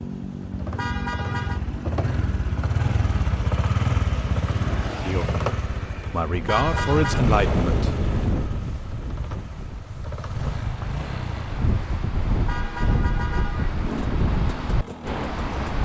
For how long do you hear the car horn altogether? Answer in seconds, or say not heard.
3 s.